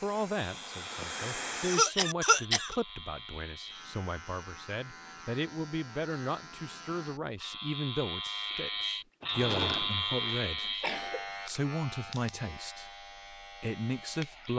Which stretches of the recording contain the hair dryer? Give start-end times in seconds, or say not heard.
0.0-1.9.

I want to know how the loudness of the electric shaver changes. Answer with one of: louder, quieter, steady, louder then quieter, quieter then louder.
louder then quieter.